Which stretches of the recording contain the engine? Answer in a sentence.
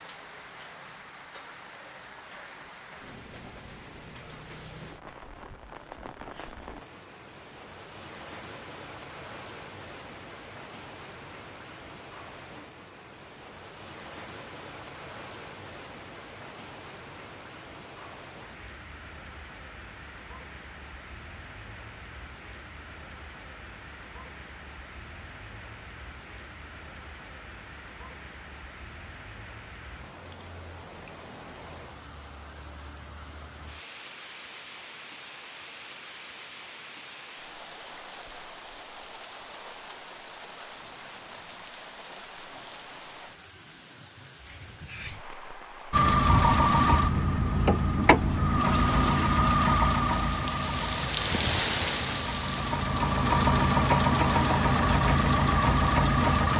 You can hear the engine from 45.9 to 56.5 s.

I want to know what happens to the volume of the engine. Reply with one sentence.
The volume of the engine goes down, then up.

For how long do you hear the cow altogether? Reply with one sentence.
The cow can't be heard in this clip.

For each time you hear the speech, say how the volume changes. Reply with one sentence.
You can't hear the speech here.